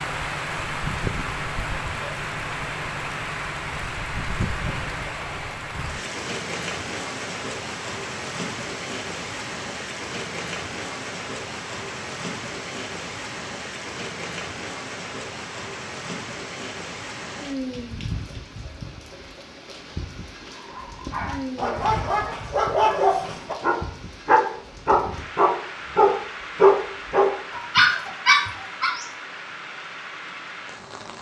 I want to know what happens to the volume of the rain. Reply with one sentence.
The loudness of the rain goes down.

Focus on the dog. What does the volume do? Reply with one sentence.
The loudness of the dog goes up.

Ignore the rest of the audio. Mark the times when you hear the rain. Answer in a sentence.
The rain can be heard from 0.0 to 31.1 s.